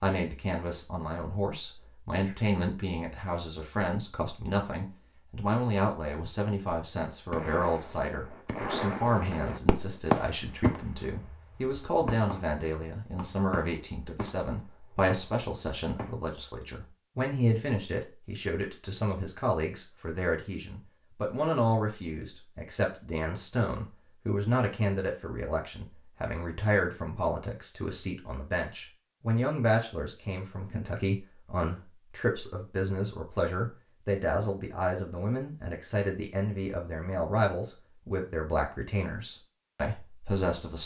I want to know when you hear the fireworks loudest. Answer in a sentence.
The loudest moment of the fireworks is at 10 seconds.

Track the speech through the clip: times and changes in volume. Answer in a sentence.
You can hear the speech from 0.0 to 40.8 s, at a steady volume.